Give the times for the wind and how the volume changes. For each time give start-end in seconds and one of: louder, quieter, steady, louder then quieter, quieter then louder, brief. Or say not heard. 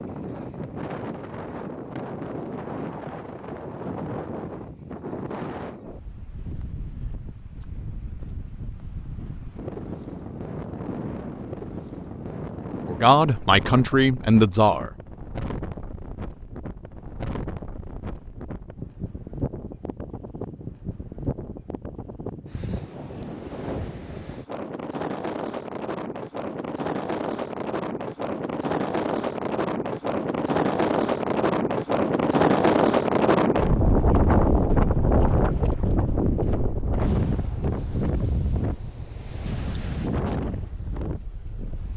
0.0-41.9 louder.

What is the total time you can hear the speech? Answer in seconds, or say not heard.
2 s.